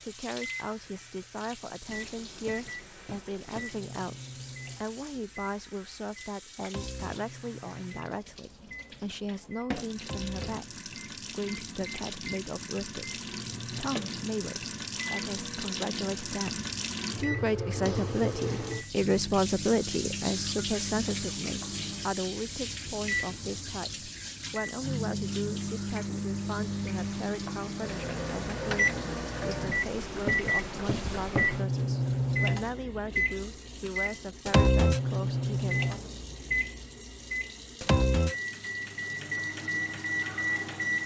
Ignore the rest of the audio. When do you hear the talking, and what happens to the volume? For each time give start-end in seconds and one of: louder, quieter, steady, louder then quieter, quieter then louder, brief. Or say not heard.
0.0-36.1 louder then quieter.